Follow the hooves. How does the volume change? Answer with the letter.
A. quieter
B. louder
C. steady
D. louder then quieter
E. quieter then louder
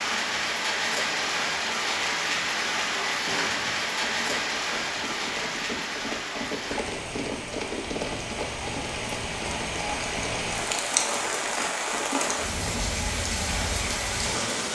D.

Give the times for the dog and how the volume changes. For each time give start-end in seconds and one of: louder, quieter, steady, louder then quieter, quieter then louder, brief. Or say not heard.
not heard.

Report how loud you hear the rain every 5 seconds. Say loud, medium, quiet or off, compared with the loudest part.
loud, medium, loud.